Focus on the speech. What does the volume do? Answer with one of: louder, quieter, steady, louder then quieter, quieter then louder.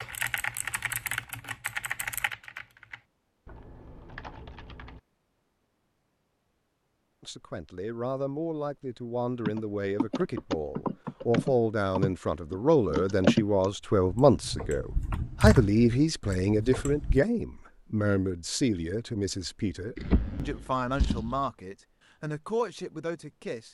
louder then quieter.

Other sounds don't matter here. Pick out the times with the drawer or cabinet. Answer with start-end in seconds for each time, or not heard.
19.9-21.4.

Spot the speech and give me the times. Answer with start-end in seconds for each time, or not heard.
7.2-23.7.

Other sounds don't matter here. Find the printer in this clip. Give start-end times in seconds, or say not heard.
not heard.